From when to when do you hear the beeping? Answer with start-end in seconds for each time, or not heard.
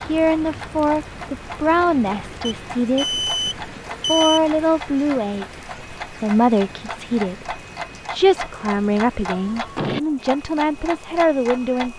2.5-4.4.